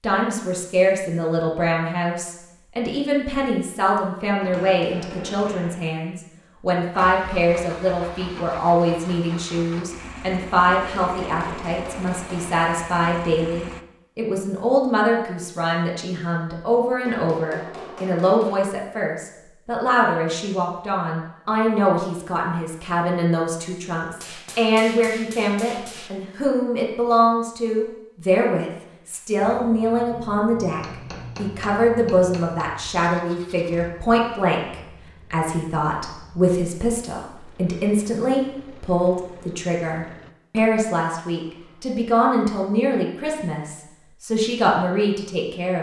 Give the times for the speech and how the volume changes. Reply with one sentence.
You can hear the speech from 0.0 to 45.7 s, at a steady volume.